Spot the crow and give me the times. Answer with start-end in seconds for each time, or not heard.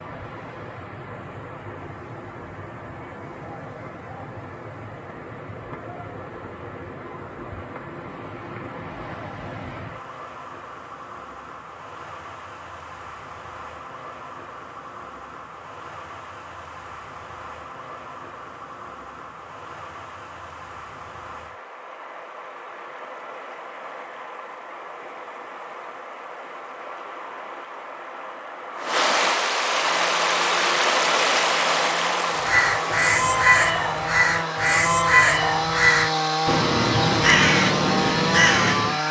32.4-39.0.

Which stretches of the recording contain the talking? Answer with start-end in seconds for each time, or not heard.
not heard.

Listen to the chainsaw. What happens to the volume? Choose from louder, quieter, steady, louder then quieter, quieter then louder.
louder.